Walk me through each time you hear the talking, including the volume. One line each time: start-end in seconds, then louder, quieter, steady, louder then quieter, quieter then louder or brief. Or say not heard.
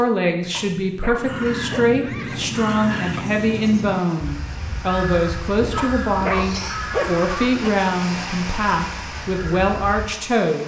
0.0-10.6 steady.